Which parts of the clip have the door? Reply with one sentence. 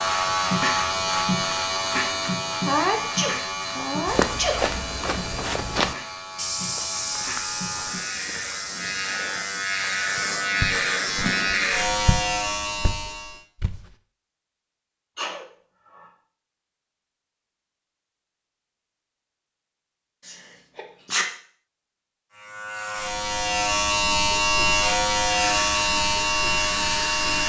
You can't hear the door here.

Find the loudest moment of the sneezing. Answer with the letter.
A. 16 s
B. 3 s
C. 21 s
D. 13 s
B.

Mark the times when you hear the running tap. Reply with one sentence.
You can hear the running tap from 25.4 to 27.4 s.